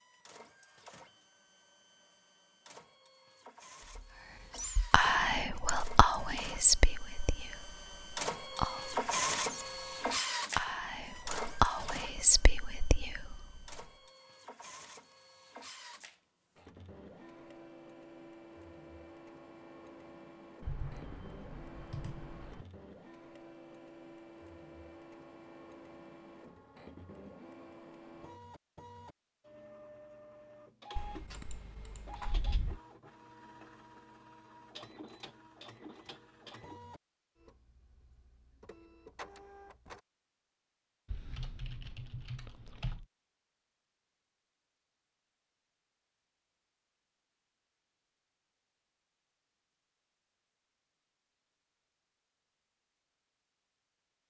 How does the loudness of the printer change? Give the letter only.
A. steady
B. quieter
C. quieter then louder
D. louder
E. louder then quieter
E.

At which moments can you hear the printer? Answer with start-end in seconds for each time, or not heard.
0.0-40.0.